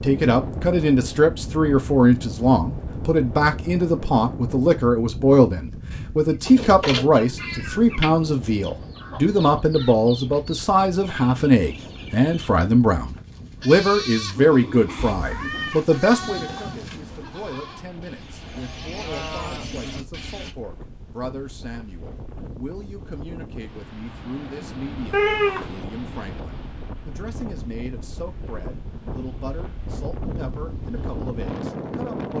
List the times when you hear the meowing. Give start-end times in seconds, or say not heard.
7.3-7.9, 14.9-17.0, 25.1-25.6.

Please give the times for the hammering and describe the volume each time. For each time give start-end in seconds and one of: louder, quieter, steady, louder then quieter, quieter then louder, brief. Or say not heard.
not heard.